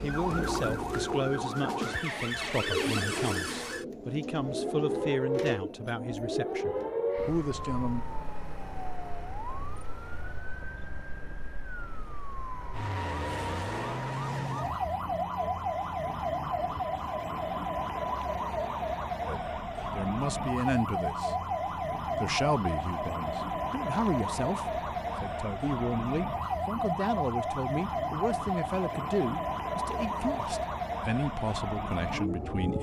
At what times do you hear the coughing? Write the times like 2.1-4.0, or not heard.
not heard.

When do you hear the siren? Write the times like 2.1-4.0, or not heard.
0.0-32.7.